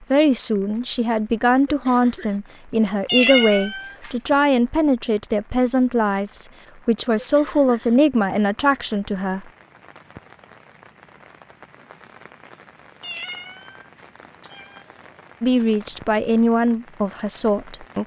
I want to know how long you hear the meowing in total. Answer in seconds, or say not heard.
3 s.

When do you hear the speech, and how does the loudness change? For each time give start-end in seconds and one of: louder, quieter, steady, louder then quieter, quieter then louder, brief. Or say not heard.
0.1-9.4 steady
15.4-18.0 brief.